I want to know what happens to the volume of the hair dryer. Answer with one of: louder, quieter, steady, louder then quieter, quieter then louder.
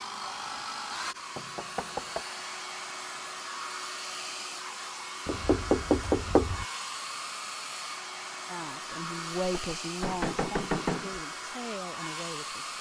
steady.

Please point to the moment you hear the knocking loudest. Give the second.
6 s.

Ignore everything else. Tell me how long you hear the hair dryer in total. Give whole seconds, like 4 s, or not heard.
13 s.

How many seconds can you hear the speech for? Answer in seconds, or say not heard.
4 s.